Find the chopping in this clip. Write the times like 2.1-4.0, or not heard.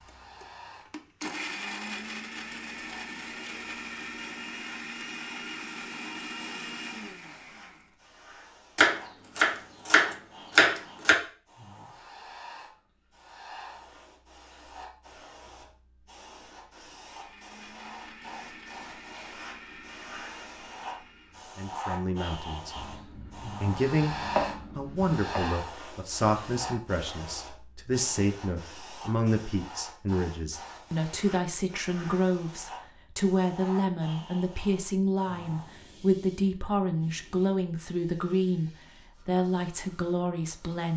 8.8-11.2, 22.8-25.4.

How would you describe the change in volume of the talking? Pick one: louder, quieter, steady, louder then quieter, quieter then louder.
steady.